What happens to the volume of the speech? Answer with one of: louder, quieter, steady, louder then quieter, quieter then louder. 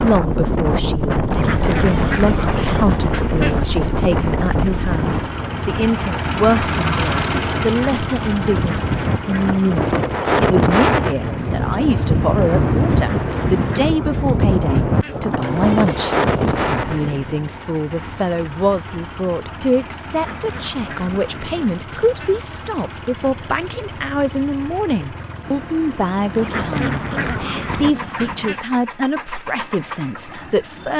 steady.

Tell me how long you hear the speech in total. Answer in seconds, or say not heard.
31 s.